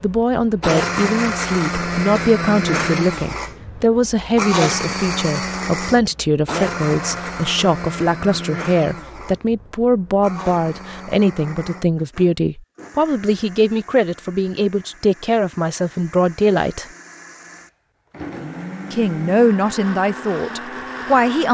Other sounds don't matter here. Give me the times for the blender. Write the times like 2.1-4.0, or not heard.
0.0-21.4.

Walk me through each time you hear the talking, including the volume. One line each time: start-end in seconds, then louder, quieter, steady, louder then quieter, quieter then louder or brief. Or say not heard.
0.0-16.9 steady
18.9-21.4 brief.